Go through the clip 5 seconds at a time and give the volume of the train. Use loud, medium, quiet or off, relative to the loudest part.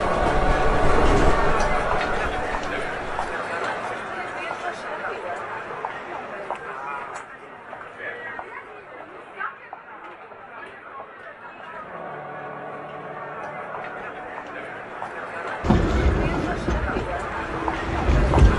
loud, off, off, loud.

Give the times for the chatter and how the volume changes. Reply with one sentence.
The chatter can be heard from 0.0 to 18.5 s, getting quieter then louder.